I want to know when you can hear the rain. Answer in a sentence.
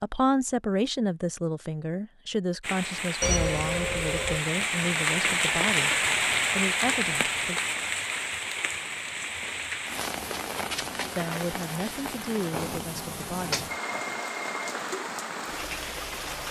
The rain can be heard from 2.6 to 16.4 s.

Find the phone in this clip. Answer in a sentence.
The phone can be heard from 3.2 to 4.4 s and from 13.5 to 14.6 s.